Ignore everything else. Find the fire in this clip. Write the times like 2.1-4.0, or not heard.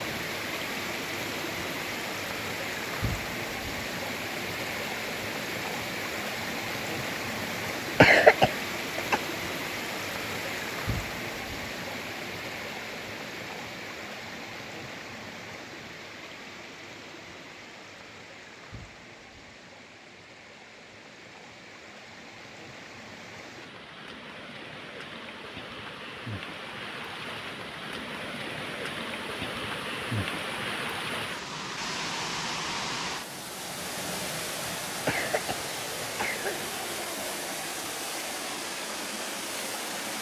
not heard.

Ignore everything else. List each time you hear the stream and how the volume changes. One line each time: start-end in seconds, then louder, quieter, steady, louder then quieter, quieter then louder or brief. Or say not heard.
0.0-40.1 quieter then louder.